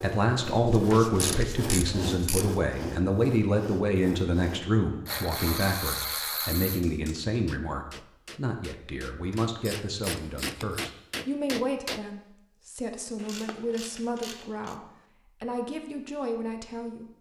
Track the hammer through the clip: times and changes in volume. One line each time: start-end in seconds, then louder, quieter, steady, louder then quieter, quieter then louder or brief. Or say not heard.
6.8-12.1 louder.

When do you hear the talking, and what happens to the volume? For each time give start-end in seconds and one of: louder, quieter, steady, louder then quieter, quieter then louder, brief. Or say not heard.
0.0-17.1 quieter.